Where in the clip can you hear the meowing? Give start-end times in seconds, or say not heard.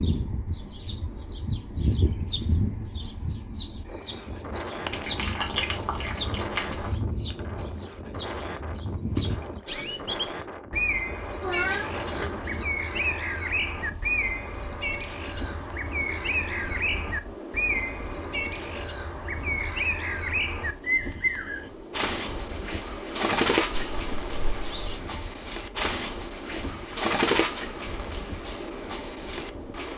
4.9-7.0, 11.4-12.7, 23.7-25.0.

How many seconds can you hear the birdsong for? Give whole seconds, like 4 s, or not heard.
30 s.